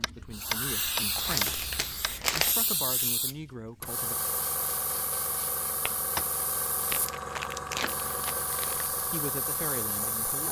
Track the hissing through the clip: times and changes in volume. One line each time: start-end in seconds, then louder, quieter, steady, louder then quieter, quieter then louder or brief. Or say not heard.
0.0-10.4 steady.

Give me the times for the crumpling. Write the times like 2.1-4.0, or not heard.
1.1-2.5, 6.8-8.9.